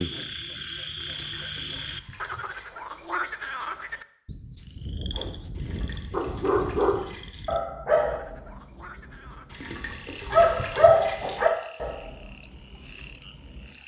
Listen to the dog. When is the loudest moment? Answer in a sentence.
The loudest moment of the dog is at 11 seconds.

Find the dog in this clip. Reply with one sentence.
The dog can be heard from 6.1 to 13.7 s.